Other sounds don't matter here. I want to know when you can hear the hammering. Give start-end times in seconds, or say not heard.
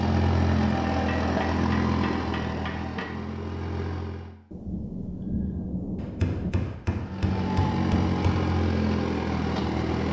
1.1-3.0, 6.0-8.3.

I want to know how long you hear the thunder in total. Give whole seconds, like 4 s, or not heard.
2 s.